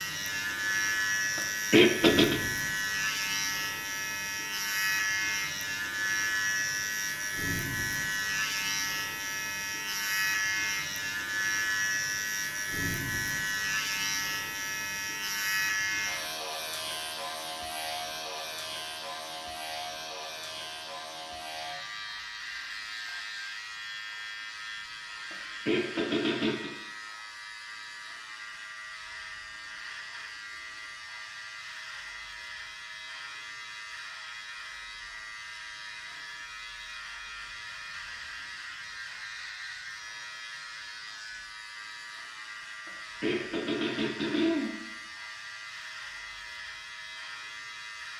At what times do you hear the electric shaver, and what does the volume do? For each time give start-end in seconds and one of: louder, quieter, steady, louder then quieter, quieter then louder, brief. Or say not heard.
0.0-48.1 quieter.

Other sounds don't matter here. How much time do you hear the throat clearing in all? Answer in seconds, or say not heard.
4 s.